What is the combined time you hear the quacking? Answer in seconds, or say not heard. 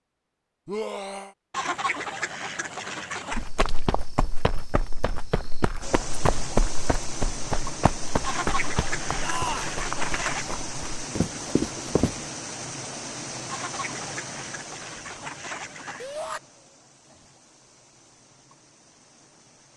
7 s.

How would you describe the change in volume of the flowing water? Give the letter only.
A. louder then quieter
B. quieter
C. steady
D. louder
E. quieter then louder
B.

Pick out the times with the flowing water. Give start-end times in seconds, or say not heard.
5.8-19.7.